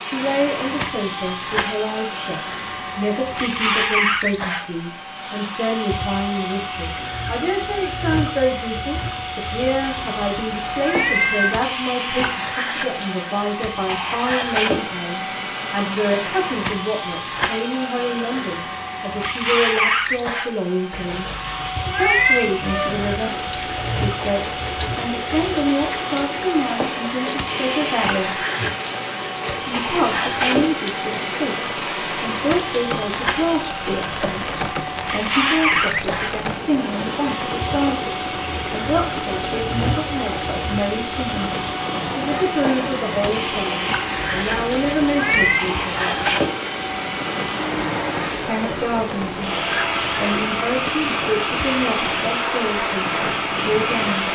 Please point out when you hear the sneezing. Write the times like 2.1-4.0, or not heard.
not heard.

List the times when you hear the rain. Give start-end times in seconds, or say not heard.
22.4-54.2.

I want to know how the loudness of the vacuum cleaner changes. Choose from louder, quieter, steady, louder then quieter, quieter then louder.
steady.